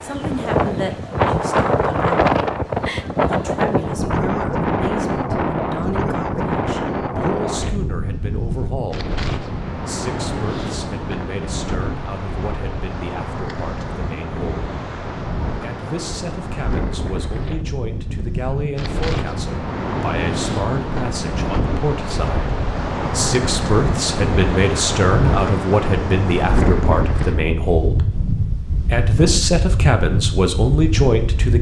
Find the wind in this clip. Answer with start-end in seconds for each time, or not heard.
0.0-31.5.